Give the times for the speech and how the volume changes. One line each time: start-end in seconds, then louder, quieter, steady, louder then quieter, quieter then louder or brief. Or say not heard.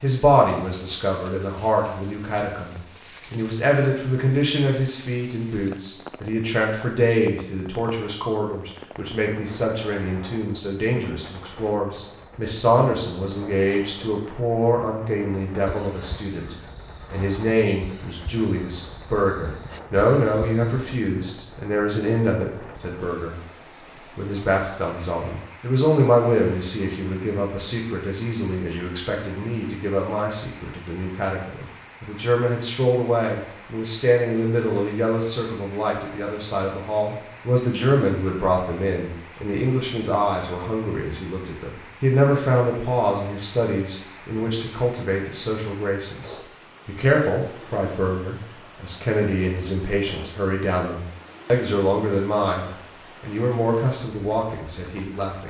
0.0-23.4 steady
24.1-55.4 steady.